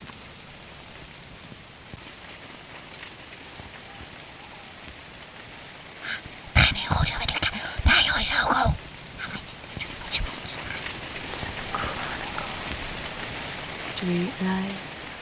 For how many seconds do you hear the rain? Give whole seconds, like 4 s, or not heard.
15 s.